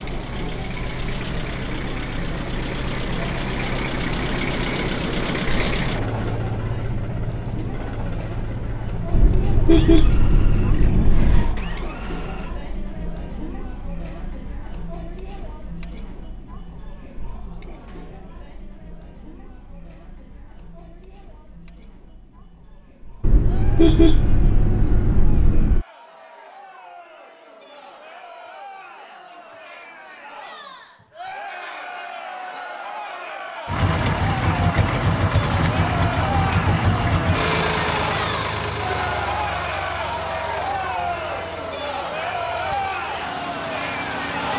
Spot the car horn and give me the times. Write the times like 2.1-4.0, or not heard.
9.1-11.6, 23.2-25.9.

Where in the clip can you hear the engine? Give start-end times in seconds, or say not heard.
0.0-12.6, 33.6-44.5.